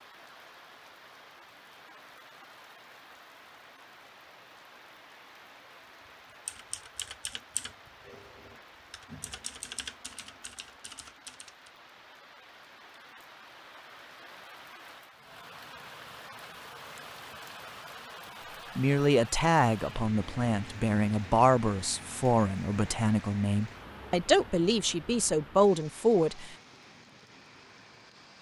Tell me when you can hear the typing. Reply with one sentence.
You can hear the typing from 6.5 to 11.7 s.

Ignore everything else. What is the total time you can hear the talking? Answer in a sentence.
You can hear the talking for 8 seconds altogether.